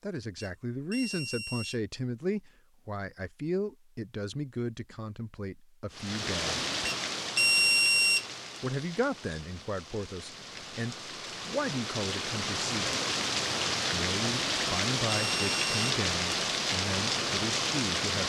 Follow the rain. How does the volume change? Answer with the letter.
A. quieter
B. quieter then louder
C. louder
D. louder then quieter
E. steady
B.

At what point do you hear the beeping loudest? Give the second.
8 s.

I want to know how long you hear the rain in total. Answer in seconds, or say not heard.
12 s.